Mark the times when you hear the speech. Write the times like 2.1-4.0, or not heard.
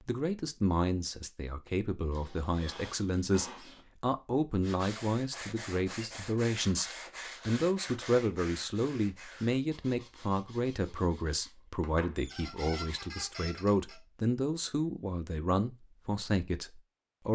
0.0-17.3.